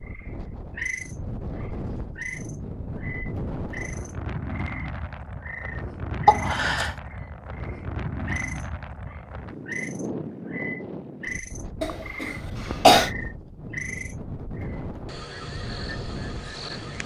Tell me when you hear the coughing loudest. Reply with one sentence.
The volume of the coughing peaks at 13 seconds.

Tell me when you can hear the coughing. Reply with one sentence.
You can hear the coughing from 6.2 to 6.9 s and from 11.8 to 13.1 s.